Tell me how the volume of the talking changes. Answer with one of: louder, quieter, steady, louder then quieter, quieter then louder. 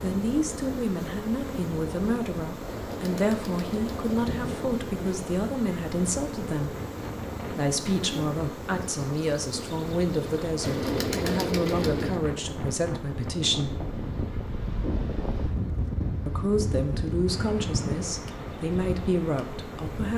steady.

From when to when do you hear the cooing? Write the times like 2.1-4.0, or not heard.
2.7-4.7, 10.6-12.2.